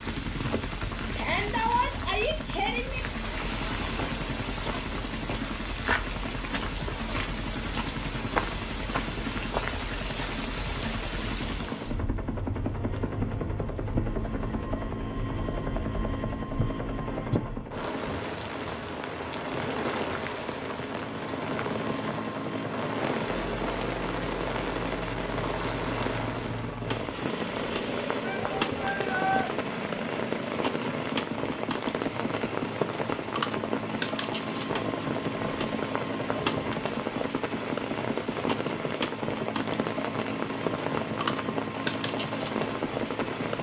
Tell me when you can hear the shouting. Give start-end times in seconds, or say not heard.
1.1-3.0, 28.2-29.5.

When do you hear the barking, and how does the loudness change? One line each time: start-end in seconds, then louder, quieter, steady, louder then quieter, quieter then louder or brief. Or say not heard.
not heard.